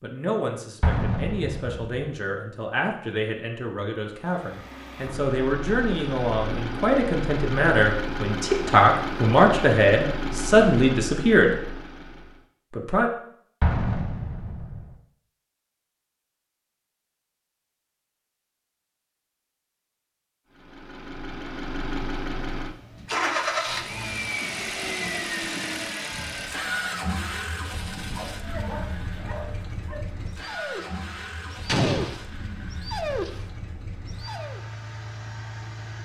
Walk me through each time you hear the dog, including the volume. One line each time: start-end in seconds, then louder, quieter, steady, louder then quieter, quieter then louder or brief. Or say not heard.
28.1-34.6 louder.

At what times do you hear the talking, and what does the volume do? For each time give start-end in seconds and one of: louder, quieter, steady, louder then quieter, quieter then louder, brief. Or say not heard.
0.0-11.6 louder
12.7-13.1 brief.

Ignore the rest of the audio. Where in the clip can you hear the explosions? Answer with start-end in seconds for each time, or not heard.
0.8-1.9, 13.6-14.8, 31.6-32.1.